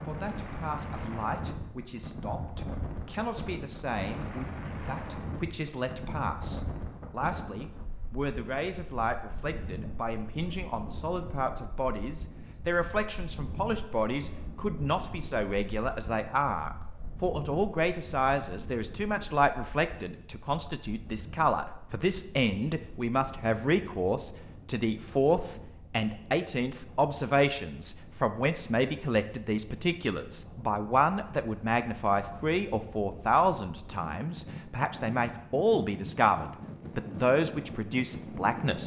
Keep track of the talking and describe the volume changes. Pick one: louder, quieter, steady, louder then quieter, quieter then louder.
louder.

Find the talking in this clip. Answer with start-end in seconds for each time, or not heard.
0.1-38.8.